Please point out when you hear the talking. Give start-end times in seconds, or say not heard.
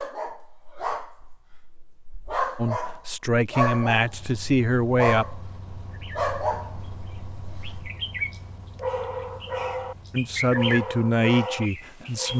2.5-5.3, 10.1-12.3.